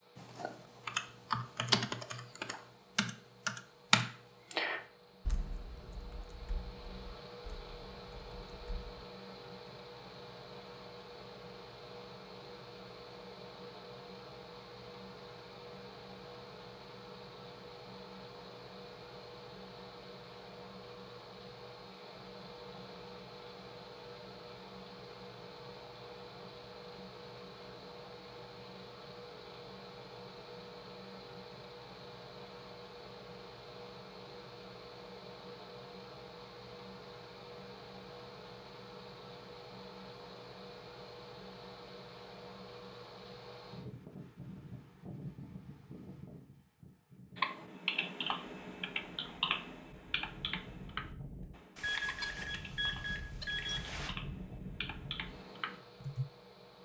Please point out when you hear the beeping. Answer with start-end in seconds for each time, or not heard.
51.8-54.1.